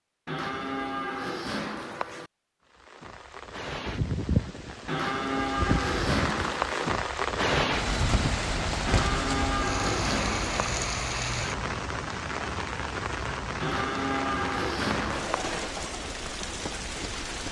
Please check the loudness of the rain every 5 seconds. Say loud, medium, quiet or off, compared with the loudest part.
loud, loud, loud, medium.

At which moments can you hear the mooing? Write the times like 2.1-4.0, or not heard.
0.2-2.3, 4.8-6.9, 8.8-10.8, 13.6-15.6.